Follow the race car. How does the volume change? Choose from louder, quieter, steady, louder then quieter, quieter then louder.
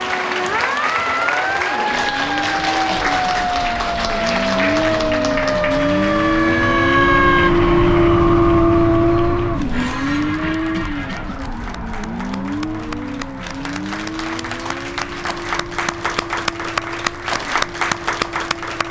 louder then quieter.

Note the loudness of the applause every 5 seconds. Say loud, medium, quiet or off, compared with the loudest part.
loud, medium, medium, loud.